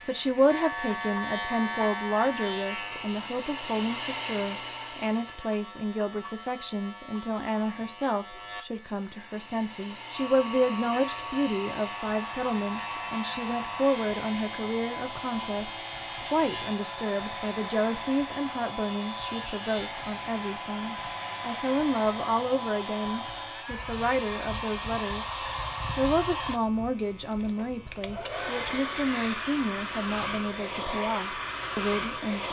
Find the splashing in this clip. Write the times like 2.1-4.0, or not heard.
not heard.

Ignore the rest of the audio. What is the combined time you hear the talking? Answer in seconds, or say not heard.
32 s.